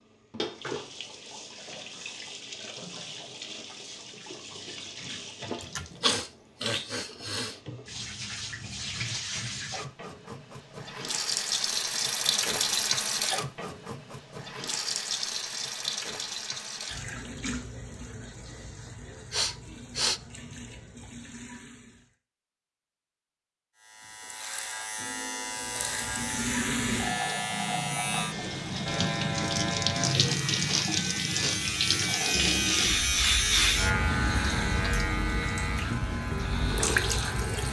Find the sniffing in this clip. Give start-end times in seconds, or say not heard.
5.6-7.5, 18.9-20.2, 30.6-31.6.